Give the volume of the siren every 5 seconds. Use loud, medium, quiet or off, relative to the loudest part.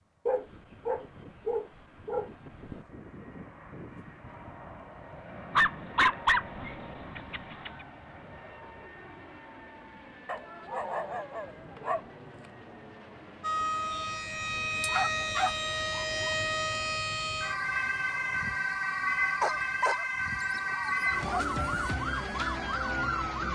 off, off, loud, loud, loud.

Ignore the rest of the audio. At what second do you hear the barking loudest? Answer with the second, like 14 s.
6 s.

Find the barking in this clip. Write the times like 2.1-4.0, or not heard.
0.2-2.8, 5.5-7.8, 10.2-12.0, 14.8-16.4, 19.4-21.4.